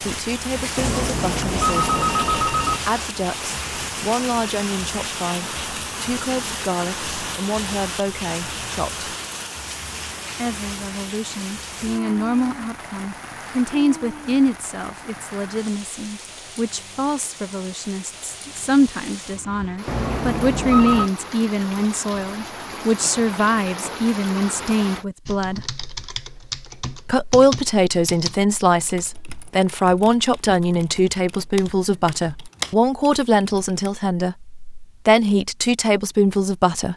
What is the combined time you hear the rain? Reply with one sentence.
You can hear the rain for 25 seconds altogether.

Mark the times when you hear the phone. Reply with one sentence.
You can hear the phone from 0.8 to 2.8 s and from 19.9 to 21.1 s.